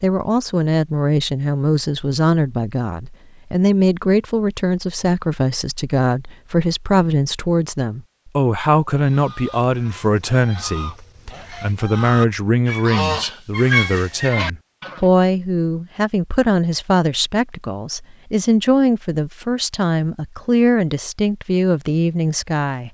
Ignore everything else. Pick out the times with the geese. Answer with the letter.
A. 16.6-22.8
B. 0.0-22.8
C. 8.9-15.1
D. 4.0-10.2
C.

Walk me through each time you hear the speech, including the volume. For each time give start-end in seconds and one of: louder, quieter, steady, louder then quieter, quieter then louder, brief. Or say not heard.
0.0-22.8 steady.